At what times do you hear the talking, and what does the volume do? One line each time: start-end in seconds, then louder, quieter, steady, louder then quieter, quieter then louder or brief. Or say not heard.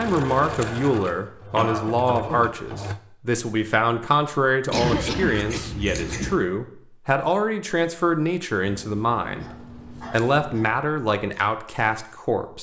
0.0-9.4 steady
10.1-12.5 brief.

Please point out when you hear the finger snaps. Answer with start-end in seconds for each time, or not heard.
not heard.